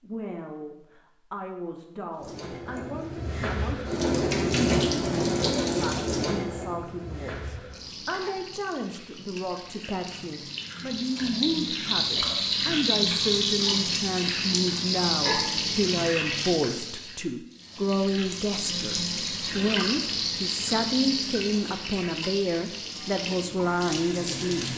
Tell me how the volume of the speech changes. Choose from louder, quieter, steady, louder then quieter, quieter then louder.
louder.